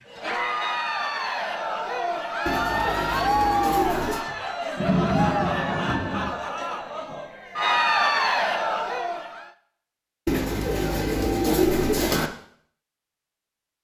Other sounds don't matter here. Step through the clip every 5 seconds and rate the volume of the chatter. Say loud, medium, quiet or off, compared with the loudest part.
loud, loud, off.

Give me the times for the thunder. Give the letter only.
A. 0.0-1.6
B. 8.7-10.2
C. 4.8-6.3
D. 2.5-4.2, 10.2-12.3
C.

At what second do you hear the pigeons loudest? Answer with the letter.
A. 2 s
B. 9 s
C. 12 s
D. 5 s
C.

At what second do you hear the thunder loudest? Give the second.
5 s.